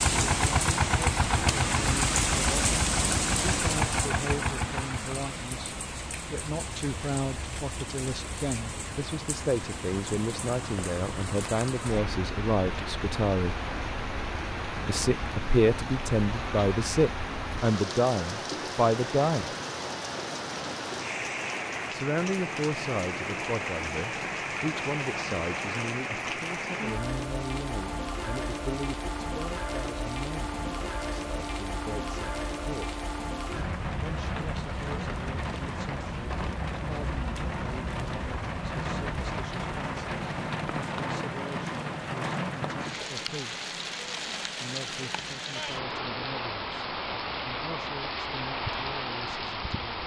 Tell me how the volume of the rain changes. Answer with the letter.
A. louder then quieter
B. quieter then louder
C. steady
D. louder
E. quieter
C.